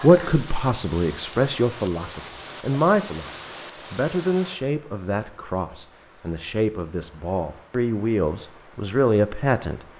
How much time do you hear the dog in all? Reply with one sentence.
The dog can't be heard in this clip.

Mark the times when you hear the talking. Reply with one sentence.
You can hear the talking from 0.0 to 9.8 s.